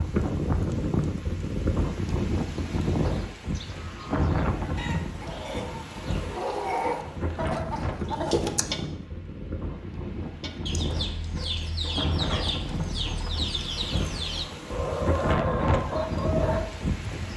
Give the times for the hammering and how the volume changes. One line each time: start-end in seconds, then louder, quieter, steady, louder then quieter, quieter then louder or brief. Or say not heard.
not heard.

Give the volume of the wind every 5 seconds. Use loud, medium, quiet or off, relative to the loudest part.
loud, medium, medium, loud.